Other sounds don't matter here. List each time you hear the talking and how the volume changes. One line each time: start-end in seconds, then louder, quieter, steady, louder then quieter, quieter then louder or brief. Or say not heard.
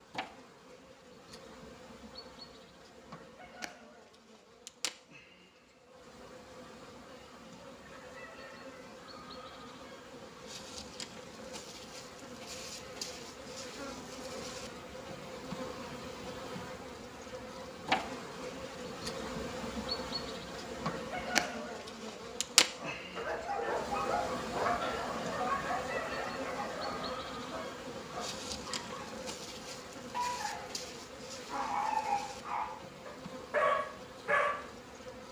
not heard.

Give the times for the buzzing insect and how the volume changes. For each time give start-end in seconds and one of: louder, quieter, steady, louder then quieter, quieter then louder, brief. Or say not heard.
0.0-35.2 louder then quieter.